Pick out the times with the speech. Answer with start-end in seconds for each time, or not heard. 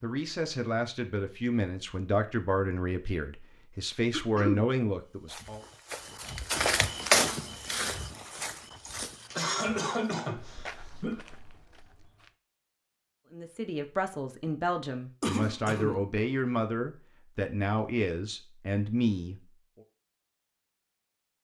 0.0-5.6, 13.3-19.4.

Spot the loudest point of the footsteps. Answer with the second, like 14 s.
7 s.